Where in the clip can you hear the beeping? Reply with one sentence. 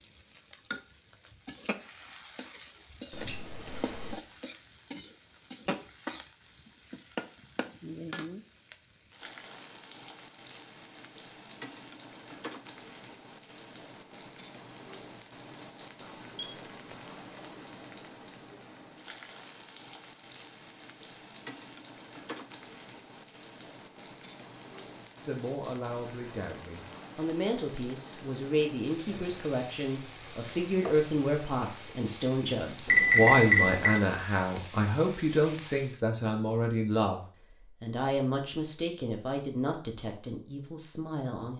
The beeping can be heard from 3.1 to 4.2 s, from 16.4 to 17.0 s and from 32.9 to 34.0 s.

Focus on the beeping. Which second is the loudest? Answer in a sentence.
The loudest moment of the beeping is at 33 seconds.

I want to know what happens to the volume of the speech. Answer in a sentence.
The loudness of the speech goes up, then down.